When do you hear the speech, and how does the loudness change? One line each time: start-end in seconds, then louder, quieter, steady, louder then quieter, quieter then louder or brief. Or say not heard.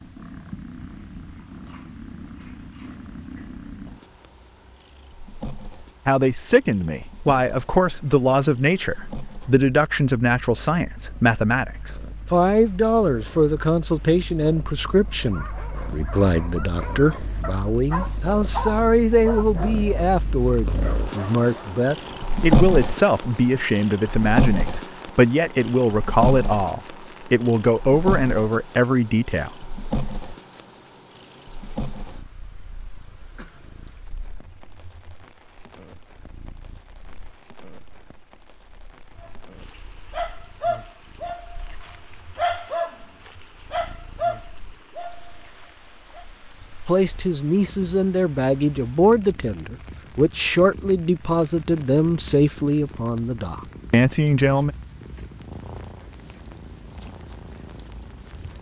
6.0-29.7 steady
46.9-54.7 steady.